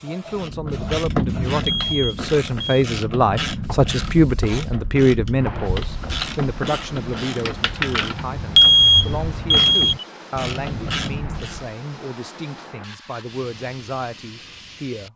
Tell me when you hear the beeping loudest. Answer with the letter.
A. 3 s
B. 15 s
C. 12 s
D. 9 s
D.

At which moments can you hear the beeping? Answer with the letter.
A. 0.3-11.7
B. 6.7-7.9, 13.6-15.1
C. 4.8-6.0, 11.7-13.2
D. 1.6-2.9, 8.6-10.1
D.